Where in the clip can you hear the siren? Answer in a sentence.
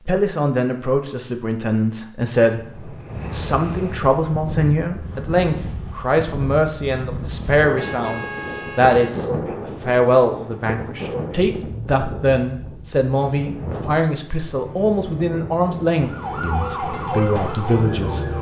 You can hear the siren from 15.9 to 18.3 s.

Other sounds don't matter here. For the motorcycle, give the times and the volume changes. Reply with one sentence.
You can't hear the motorcycle here.